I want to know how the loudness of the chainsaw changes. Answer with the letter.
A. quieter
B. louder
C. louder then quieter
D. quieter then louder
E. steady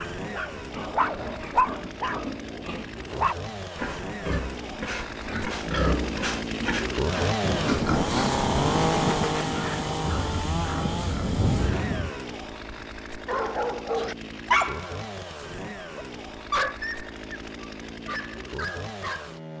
C.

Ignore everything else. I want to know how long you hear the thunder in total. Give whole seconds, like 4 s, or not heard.
5 s.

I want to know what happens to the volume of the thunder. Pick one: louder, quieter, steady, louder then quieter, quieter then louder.
quieter then louder.